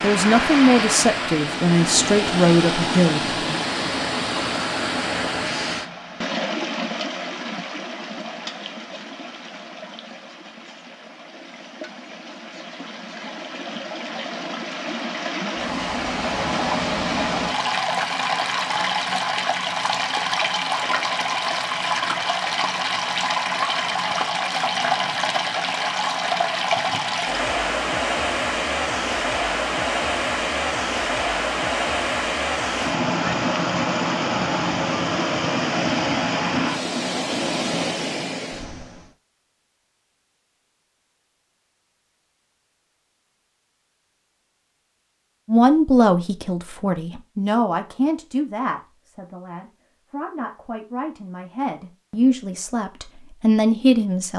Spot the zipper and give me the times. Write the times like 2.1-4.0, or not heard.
not heard.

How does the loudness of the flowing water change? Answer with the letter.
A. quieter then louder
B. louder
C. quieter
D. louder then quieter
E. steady
A.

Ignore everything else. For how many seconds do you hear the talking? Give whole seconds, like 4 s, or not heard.
12 s.